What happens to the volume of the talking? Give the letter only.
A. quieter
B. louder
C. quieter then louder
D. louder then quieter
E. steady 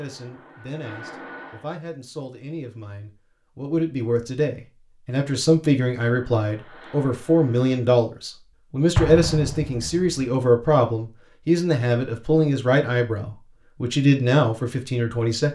B.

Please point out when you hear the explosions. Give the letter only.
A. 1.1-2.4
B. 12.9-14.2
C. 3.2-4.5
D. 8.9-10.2
D.